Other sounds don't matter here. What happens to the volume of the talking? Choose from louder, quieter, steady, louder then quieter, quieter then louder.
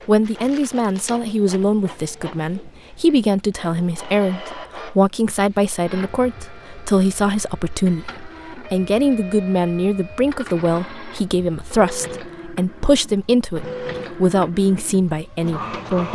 steady.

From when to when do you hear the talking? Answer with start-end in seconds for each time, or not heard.
0.1-16.1.